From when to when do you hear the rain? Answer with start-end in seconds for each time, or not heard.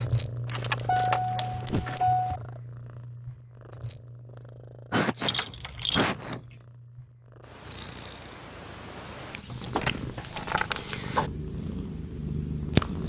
not heard.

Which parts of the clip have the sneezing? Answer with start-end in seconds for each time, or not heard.
1.4-1.9, 4.9-6.4, 9.5-10.2.